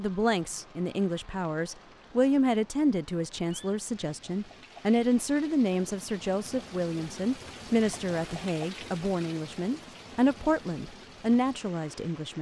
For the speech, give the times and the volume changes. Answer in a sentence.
The speech can be heard from 0.0 to 12.3 s, at a steady volume.